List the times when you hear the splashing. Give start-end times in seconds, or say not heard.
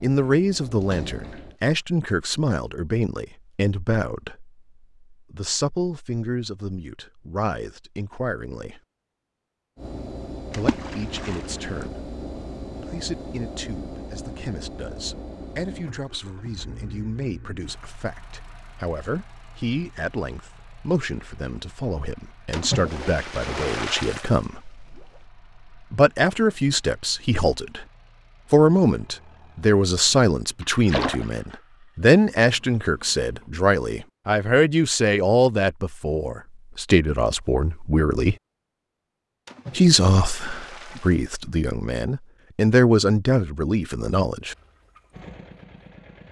0.8-1.7, 10.5-11.9, 22.5-24.4, 30.9-31.4, 39.5-41.4.